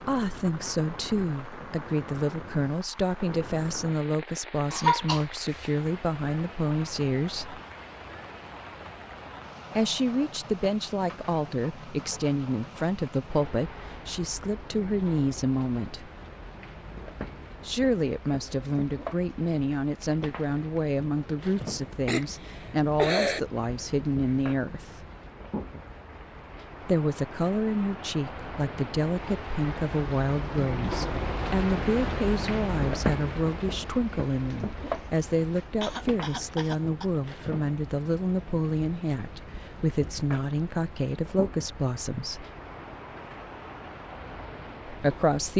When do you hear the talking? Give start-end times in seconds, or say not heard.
0.0-7.6, 9.8-16.1, 17.6-25.1, 26.8-42.5, 44.9-45.5.